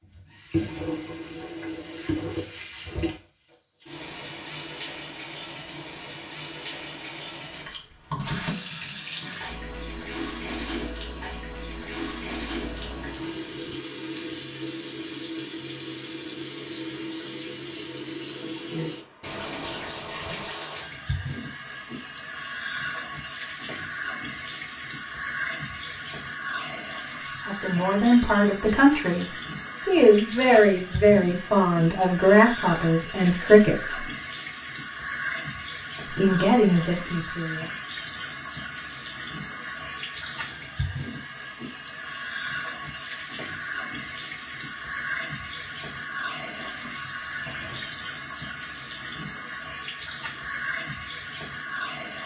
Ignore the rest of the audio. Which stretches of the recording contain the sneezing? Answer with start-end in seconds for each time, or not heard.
not heard.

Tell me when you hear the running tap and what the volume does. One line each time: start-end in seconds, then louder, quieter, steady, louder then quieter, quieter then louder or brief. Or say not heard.
0.0-52.2 steady.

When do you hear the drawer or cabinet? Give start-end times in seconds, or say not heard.
12.7-13.8, 19.2-20.6, 46.5-47.9.